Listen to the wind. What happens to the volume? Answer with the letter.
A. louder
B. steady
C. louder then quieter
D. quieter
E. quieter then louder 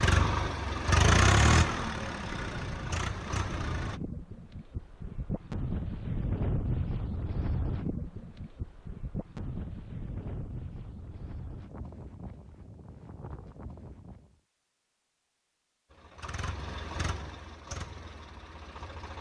C.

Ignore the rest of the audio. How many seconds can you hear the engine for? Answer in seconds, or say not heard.
7 s.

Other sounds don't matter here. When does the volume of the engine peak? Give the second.
1 s.